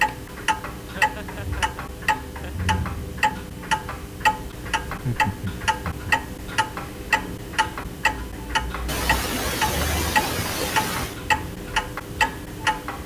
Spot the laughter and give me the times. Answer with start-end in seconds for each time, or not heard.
0.8-2.5, 4.8-6.1, 8.8-11.2.